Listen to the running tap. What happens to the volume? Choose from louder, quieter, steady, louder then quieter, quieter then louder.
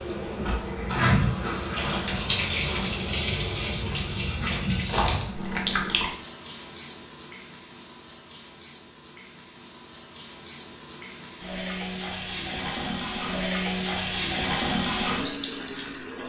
quieter then louder.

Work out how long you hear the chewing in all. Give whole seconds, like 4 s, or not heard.
6 s.